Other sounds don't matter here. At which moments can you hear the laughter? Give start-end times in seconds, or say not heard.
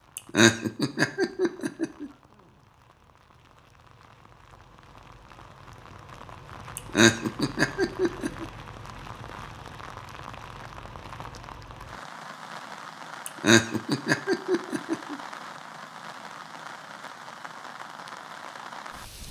0.1-2.1, 6.8-8.4, 13.2-15.2.